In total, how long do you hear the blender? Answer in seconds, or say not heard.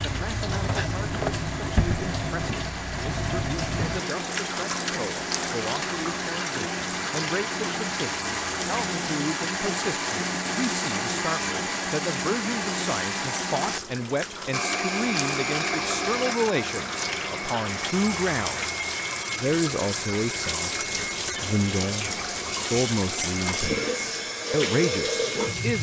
26 s.